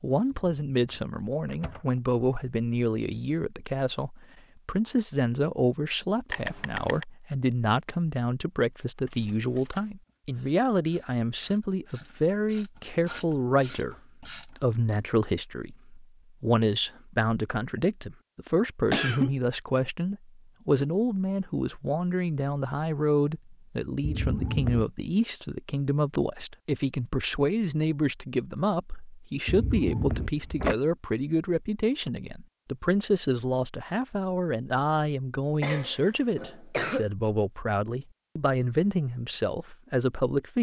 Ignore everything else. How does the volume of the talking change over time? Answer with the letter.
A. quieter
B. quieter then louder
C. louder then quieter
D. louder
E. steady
E.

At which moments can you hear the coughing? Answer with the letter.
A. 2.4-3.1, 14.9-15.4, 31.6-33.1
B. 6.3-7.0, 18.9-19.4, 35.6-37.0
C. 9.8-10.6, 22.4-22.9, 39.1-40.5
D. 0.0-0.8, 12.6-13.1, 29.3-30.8
B.